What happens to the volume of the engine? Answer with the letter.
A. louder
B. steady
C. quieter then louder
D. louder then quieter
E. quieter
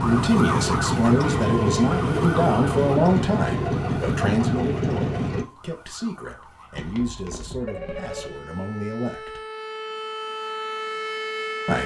B.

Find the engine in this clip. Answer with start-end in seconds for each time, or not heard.
0.0-5.5.